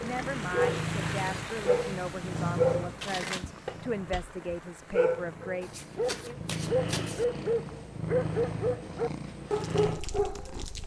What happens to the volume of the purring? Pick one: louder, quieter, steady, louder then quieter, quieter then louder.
quieter then louder.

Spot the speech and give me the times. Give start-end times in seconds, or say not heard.
0.0-6.3.